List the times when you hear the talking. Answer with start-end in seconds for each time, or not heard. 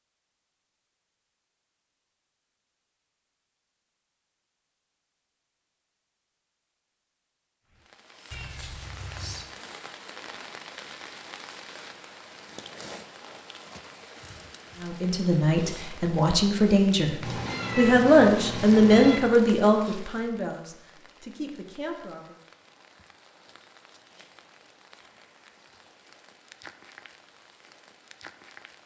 14.8-17.1, 17.8-22.4.